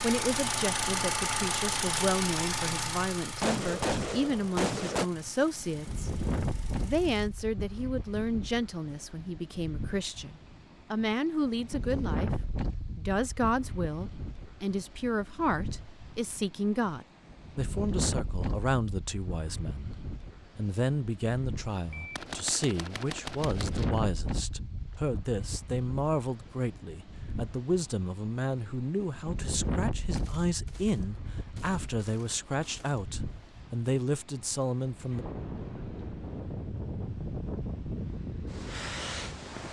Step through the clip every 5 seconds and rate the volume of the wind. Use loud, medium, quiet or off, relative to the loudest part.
off, loud, loud, loud, loud, loud, medium, loud.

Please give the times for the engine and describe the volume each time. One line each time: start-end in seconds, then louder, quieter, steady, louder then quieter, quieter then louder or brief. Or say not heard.
0.0-7.2 quieter.